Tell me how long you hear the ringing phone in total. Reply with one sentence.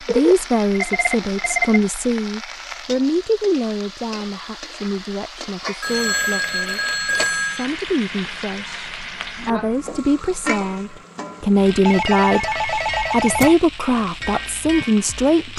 The ringing phone can be heard for 5 seconds in total.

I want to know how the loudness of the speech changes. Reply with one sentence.
The loudness of the speech goes down, then up.